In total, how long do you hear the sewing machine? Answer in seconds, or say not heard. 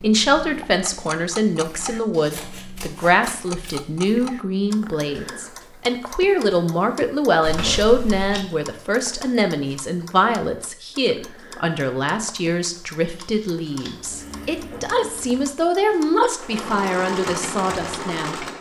5 s.